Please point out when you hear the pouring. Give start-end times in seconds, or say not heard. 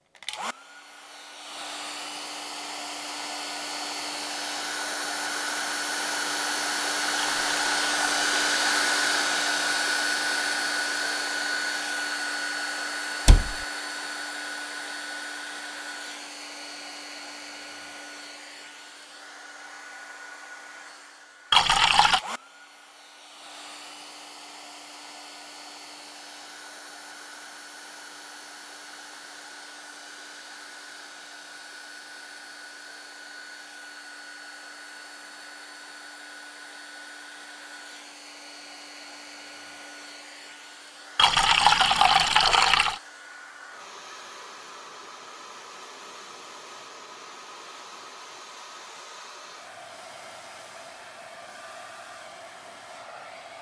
7.2-8.3, 21.5-22.2, 41.1-43.0.